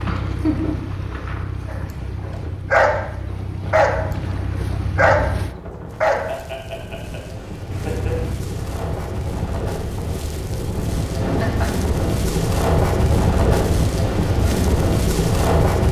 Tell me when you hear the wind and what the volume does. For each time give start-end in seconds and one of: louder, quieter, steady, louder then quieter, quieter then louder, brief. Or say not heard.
0.0-15.8 louder.